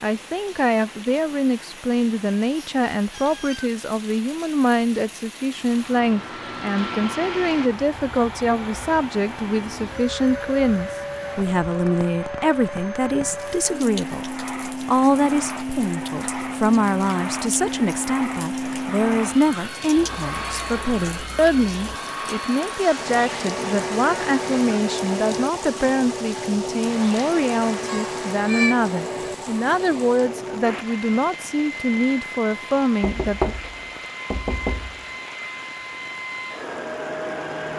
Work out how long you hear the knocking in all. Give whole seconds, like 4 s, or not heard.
2 s.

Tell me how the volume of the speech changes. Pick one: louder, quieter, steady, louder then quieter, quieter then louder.
steady.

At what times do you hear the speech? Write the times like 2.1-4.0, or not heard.
0.0-33.5.